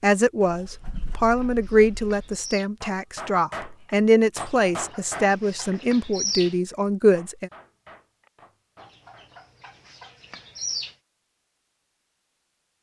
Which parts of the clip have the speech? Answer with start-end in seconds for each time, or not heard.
0.0-7.5.